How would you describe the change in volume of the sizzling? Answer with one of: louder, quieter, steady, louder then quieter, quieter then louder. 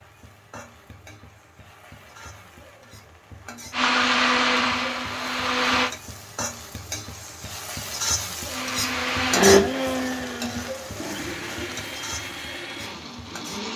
louder then quieter.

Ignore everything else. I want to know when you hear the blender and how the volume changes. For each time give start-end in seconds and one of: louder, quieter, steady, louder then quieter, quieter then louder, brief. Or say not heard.
3.7-5.9 brief
8.4-13.7 quieter.